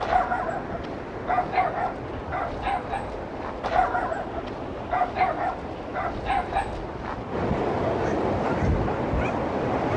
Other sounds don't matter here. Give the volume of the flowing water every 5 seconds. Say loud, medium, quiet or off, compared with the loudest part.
medium, loud.